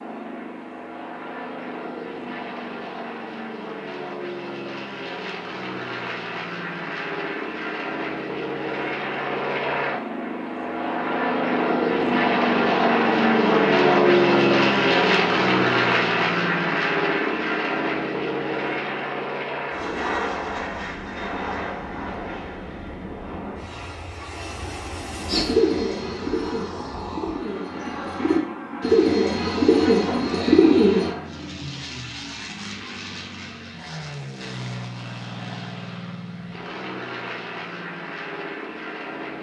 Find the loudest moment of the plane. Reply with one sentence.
The loudest moment of the plane is at 14 seconds.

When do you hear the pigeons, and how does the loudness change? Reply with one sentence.
The pigeons can be heard from 25.2 to 31.1 s, getting quieter then louder.